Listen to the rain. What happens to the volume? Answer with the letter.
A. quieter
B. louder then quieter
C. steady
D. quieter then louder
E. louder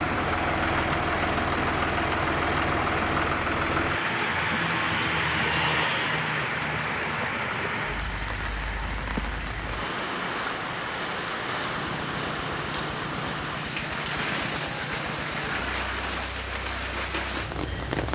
C.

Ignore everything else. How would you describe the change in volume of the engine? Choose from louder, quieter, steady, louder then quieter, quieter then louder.
quieter.